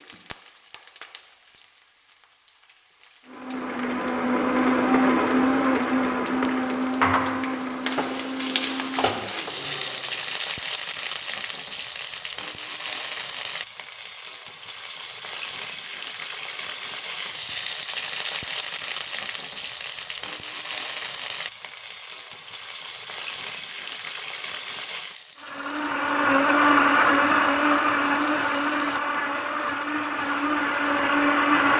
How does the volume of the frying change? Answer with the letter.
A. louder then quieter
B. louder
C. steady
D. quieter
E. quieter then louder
A.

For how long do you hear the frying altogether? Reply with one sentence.
You can hear the frying for 32 seconds altogether.